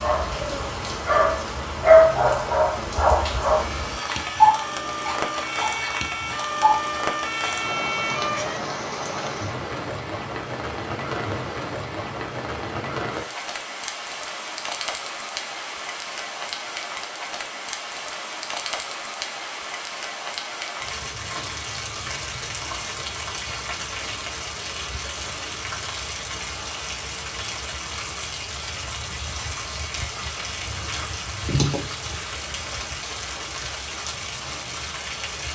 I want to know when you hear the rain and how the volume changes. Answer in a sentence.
You can hear the rain from 0.0 to 35.5 s, at a steady volume.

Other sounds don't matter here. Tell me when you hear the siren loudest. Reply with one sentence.
The loudest moment of the siren is at 8 seconds.